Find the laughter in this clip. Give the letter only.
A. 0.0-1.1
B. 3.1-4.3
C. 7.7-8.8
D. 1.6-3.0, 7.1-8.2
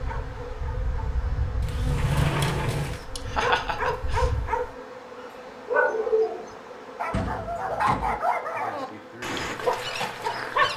B.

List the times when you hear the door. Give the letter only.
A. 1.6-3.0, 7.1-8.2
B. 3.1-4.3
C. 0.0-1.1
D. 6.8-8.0
A.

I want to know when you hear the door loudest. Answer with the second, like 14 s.
2 s.